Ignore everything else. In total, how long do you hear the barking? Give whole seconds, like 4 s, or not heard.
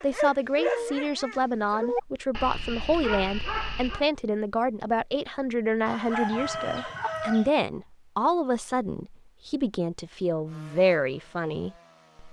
4 s.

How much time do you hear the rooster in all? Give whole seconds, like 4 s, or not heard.
2 s.